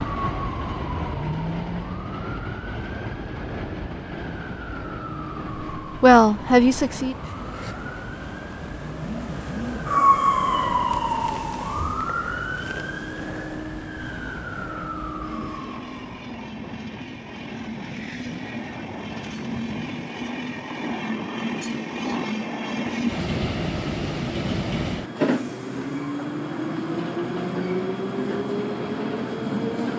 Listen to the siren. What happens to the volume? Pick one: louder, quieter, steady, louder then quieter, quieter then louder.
louder then quieter.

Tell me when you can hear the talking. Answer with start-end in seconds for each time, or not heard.
6.0-7.2.